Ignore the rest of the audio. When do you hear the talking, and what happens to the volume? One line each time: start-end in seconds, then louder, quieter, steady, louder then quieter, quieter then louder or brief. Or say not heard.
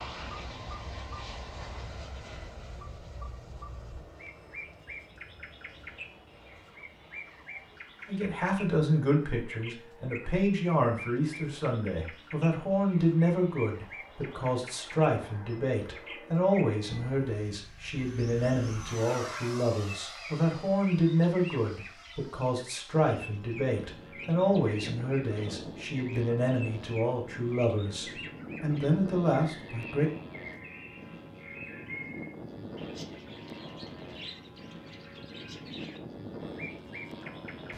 8.1-30.1 steady.